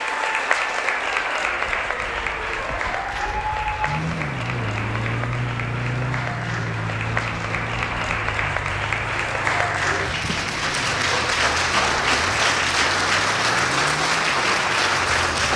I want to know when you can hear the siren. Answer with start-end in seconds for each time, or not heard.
0.0-15.5.